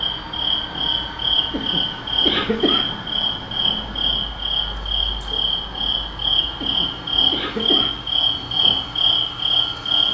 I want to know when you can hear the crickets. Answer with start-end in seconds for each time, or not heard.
0.0-10.0.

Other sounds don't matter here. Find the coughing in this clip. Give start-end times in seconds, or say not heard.
1.5-3.0, 6.6-8.0.